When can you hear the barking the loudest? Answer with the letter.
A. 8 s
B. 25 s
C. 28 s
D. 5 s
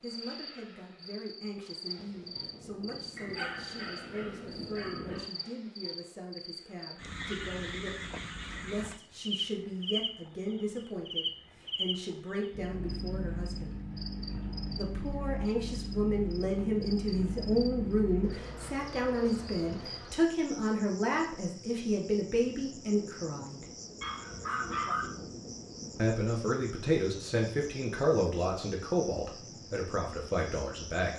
B.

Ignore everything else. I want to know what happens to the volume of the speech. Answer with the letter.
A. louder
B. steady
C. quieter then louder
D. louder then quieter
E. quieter
A.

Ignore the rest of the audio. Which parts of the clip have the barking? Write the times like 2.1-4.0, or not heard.
3.1-5.3, 24.0-25.1.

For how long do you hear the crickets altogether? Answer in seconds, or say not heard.
31 s.